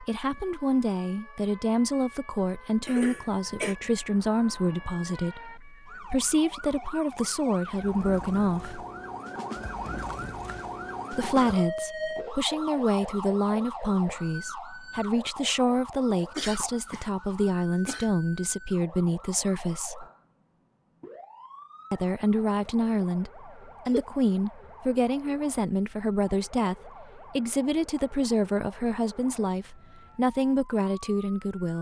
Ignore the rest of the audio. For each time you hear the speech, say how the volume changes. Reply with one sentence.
The speech can be heard from 0.0 to 8.8 s, at a steady volume; from 11.1 to 20.1 s, at a steady volume; and from 21.9 to 31.7 s, at a steady volume.